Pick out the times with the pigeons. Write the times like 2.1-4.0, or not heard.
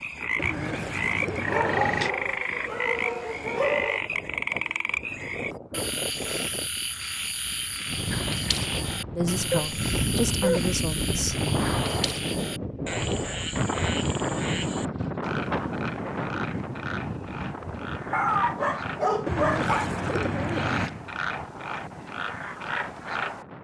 0.3-2.1, 19.2-20.9.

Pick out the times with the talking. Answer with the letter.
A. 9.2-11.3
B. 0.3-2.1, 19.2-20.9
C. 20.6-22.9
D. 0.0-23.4
A.